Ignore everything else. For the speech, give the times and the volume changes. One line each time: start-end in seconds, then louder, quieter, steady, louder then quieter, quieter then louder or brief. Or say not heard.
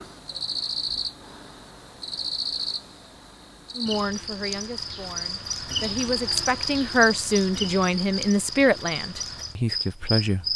3.8-10.4 louder then quieter.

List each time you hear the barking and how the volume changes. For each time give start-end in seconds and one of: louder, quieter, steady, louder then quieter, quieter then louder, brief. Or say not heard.
not heard.